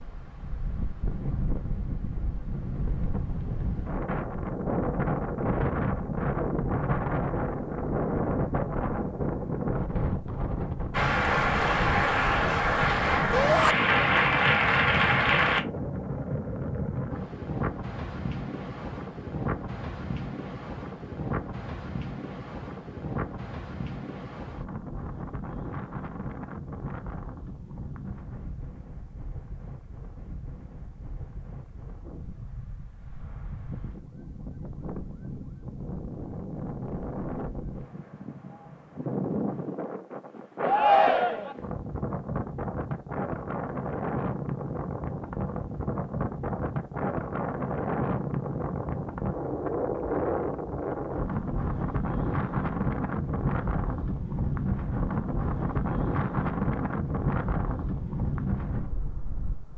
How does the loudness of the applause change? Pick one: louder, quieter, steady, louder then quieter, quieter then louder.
steady.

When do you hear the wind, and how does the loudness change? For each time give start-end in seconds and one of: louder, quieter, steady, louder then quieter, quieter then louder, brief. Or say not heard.
0.0-59.7 quieter then louder.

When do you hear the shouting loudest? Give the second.
41 s.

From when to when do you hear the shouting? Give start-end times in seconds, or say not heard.
13.3-13.8, 40.6-41.5.